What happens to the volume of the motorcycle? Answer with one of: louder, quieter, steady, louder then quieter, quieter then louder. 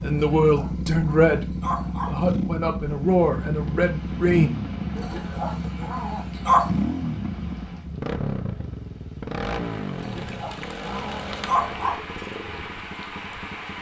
quieter.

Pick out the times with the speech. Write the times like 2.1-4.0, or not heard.
0.0-4.5.